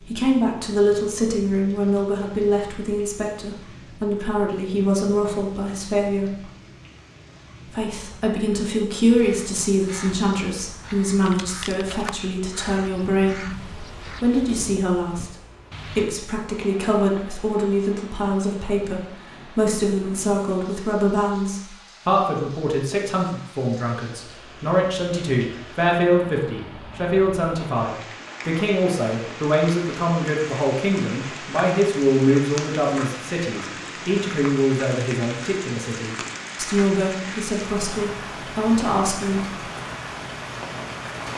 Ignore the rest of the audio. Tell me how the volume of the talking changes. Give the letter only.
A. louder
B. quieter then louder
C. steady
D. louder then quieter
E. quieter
C.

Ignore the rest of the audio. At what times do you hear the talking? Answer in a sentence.
The talking can be heard from 0.0 to 6.5 s and from 7.7 to 39.6 s.